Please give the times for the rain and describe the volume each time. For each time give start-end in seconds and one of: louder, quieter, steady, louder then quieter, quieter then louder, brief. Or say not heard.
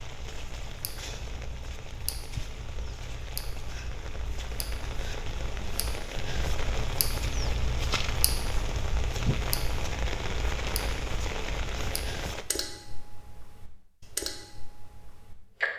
0.0-12.4 louder.